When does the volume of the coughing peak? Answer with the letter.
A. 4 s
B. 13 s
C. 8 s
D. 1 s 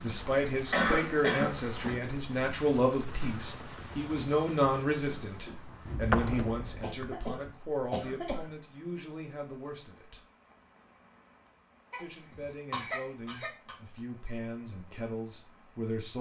D.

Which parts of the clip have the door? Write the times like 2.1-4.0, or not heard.
5.8-7.2.